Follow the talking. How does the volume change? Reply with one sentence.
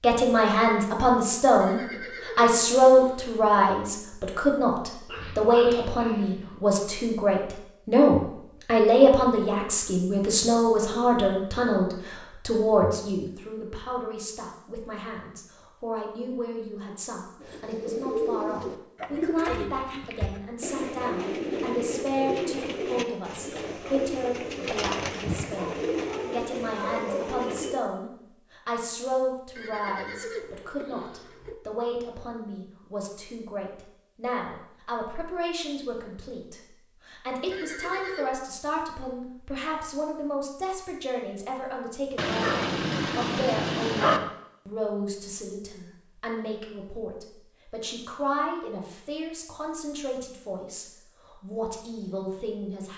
The volume of the talking goes down.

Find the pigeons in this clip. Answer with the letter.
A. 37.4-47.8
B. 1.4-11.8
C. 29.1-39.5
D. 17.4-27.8
D.